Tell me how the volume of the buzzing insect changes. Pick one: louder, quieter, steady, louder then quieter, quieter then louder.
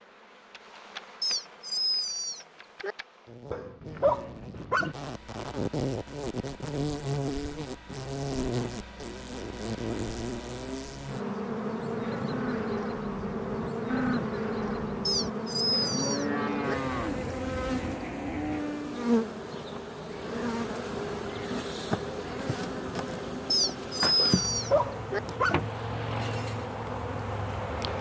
louder.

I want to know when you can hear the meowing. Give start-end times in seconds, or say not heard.
1.2-3.0, 15.1-16.8, 23.5-25.2.